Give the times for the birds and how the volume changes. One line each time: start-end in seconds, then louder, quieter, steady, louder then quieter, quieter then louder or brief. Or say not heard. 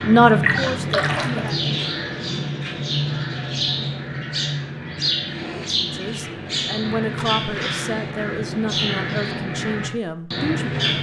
0.0-10.9 steady.